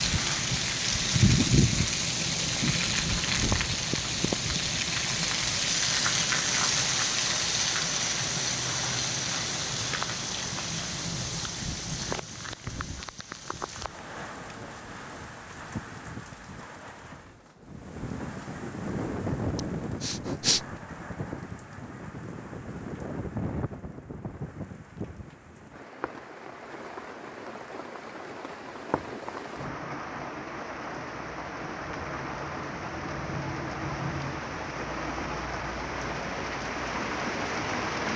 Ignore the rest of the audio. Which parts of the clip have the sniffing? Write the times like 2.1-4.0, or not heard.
19.6-20.6.